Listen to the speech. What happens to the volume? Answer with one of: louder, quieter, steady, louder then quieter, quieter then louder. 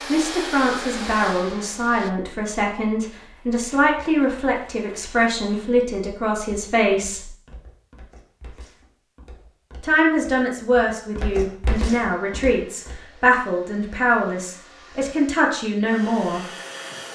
steady.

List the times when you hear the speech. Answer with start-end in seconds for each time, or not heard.
0.1-7.3, 9.8-16.4.